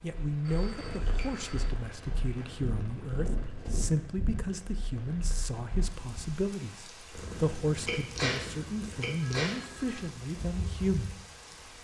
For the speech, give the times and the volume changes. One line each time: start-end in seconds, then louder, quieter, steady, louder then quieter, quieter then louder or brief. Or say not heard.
0.0-11.2 steady.